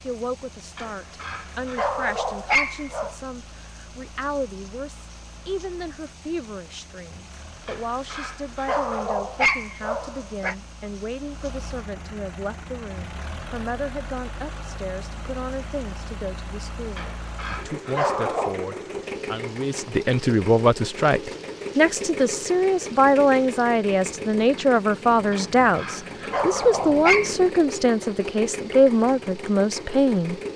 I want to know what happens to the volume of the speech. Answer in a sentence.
The volume of the speech goes up.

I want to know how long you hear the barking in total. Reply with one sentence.
You can hear the barking for 9 seconds altogether.